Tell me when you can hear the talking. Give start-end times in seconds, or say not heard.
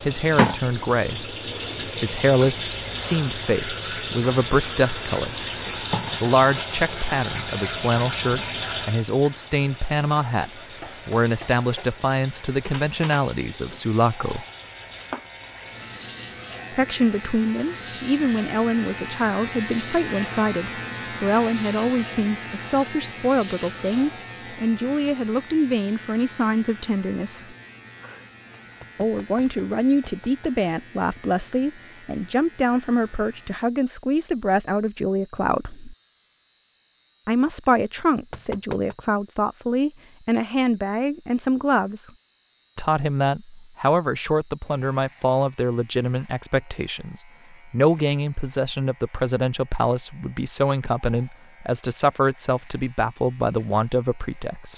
0.0-5.5, 6.2-14.4, 16.7-27.6, 28.9-36.0, 37.2-42.1, 42.8-54.7.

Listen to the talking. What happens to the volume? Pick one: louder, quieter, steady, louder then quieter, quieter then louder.
steady.